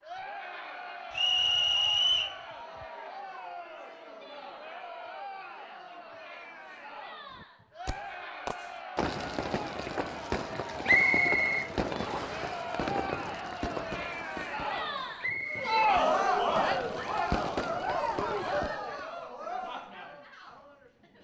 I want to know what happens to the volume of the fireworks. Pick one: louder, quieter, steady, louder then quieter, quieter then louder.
quieter then louder.